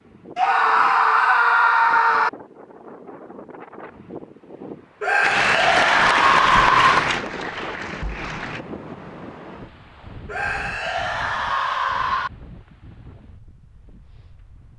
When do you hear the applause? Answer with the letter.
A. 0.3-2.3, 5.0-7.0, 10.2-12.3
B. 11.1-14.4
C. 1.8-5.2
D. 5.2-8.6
D.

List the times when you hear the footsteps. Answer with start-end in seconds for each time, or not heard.
not heard.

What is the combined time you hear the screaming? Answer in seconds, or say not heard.
6 s.